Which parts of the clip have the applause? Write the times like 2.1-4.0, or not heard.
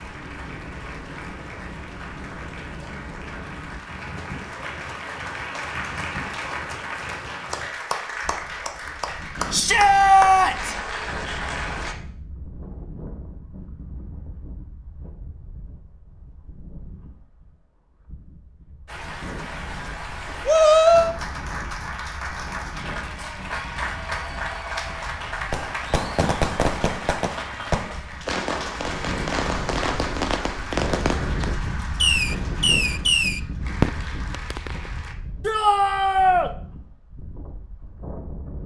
0.0-11.9, 18.9-35.1.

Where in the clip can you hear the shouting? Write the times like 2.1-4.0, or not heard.
9.5-10.8, 20.4-21.1, 35.5-36.5.